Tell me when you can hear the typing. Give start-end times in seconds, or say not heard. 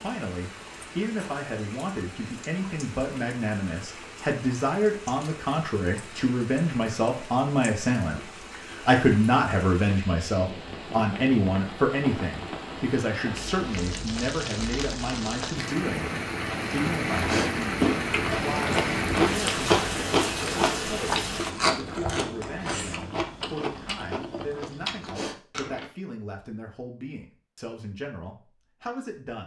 not heard.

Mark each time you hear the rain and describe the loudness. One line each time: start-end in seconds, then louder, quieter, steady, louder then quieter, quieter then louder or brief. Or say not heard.
0.0-21.6 louder.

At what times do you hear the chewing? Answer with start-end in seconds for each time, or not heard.
17.1-25.9.